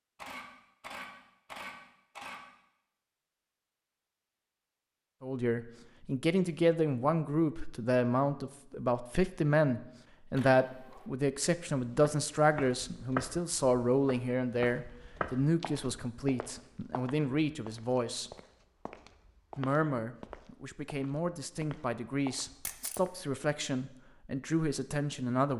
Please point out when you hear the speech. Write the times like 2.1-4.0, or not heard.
5.2-18.3, 19.6-25.5.